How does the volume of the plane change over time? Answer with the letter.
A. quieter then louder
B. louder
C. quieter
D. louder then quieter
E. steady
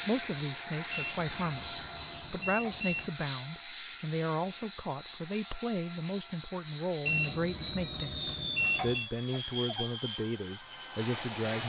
C.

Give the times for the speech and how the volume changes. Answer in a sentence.
The speech can be heard from 0.0 to 11.6 s, at a steady volume.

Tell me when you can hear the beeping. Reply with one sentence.
You can hear the beeping from 0.9 to 3.1 s and from 7.0 to 9.1 s.